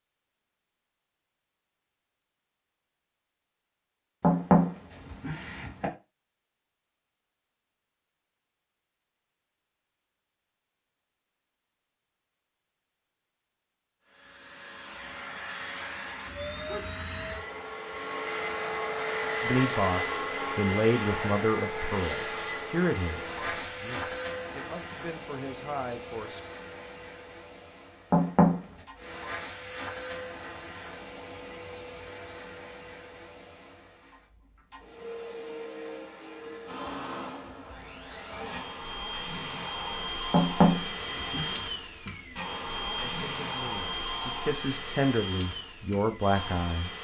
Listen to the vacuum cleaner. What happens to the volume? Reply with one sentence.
The volume of the vacuum cleaner goes down, then up.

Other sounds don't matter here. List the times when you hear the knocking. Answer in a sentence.
The knocking can be heard from 4.2 to 5.8 s, from 28.1 to 28.6 s and from 40.3 to 41.5 s.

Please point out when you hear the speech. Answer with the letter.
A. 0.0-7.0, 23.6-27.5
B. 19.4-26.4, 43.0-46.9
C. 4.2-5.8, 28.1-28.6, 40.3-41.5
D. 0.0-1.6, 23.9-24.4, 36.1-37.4
B.